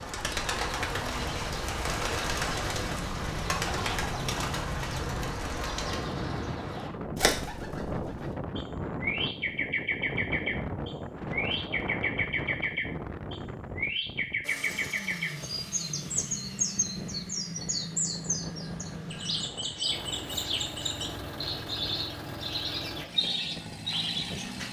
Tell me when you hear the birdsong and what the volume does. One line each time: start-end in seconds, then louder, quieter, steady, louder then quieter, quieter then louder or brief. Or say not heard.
0.0-24.6 steady.